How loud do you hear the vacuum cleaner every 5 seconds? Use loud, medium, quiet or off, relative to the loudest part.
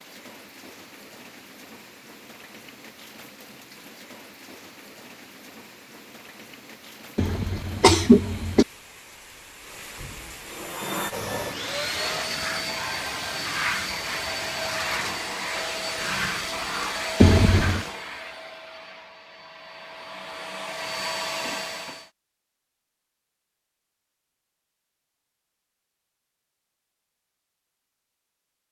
off, off, loud, loud, loud, off.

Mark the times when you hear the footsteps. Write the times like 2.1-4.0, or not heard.
not heard.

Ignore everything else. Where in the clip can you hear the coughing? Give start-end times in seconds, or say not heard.
7.2-8.7, 17.2-17.8.